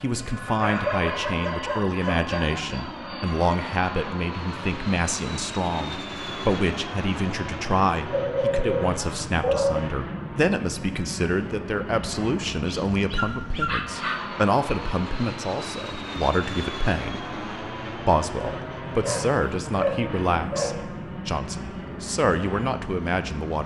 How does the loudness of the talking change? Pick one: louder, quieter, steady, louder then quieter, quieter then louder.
steady.